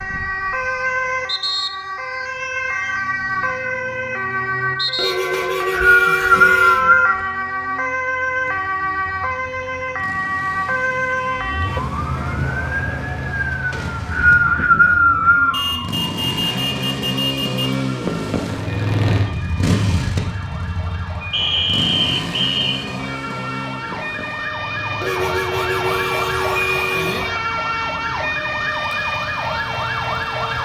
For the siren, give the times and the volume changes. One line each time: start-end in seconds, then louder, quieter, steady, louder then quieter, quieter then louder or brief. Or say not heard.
0.0-30.6 quieter then louder.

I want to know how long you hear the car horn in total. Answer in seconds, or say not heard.
6 s.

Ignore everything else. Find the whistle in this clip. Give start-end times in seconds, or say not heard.
5.3-7.2, 13.7-15.6, 21.3-22.6.